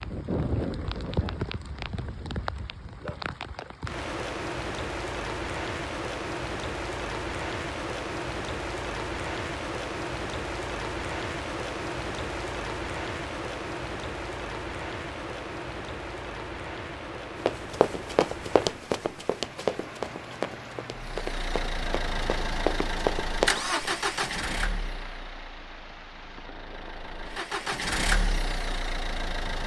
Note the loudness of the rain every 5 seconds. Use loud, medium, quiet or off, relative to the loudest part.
loud, loud, loud, medium, medium, quiet.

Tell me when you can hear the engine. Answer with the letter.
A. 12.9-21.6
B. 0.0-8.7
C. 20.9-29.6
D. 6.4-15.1
C.